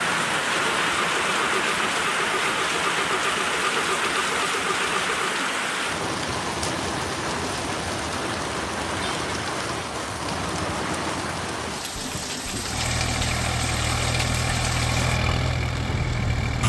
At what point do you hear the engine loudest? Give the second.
15 s.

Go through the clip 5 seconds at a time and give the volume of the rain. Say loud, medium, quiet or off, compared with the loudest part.
loud, loud, medium, medium.